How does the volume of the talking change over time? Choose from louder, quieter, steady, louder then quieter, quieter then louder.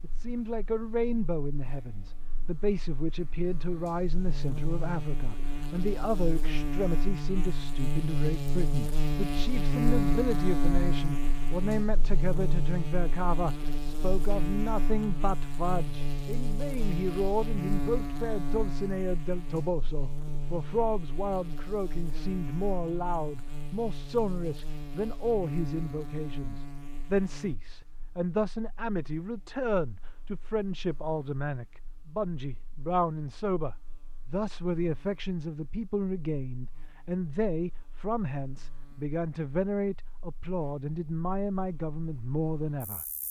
steady.